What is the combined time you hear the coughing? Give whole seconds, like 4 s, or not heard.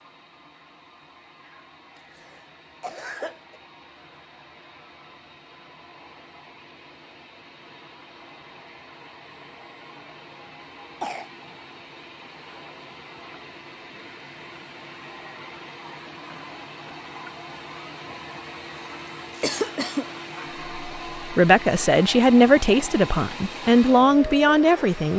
3 s.